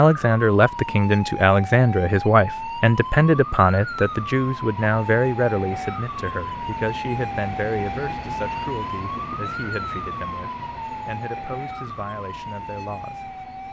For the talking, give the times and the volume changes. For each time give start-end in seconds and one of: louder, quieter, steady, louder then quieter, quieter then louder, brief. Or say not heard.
0.0-13.3 quieter.